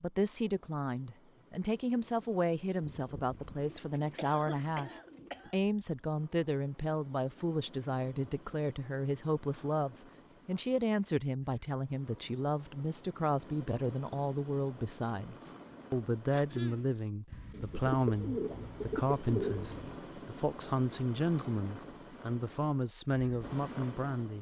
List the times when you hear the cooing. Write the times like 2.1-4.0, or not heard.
2.8-5.5, 17.3-20.0.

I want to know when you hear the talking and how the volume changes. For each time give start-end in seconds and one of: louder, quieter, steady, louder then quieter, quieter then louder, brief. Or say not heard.
0.0-24.3 steady.